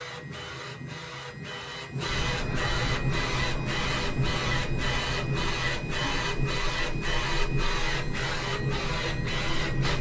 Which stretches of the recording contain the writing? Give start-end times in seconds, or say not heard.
2.0-9.9.